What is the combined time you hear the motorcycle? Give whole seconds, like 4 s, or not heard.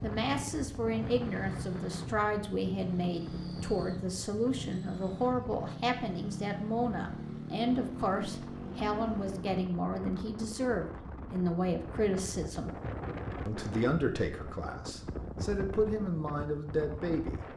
10 s.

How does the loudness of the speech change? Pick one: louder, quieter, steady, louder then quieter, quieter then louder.
steady.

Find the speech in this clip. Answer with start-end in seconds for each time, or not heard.
0.0-12.7, 13.4-17.4.